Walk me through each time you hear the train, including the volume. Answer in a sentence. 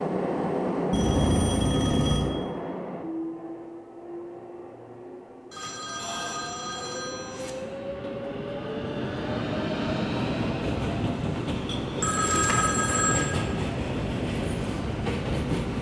You can hear the train from 0.0 to 15.7 s, getting quieter then louder.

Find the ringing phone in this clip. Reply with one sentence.
The ringing phone can be heard from 0.9 to 2.3 s, from 5.5 to 7.5 s and from 12.0 to 13.3 s.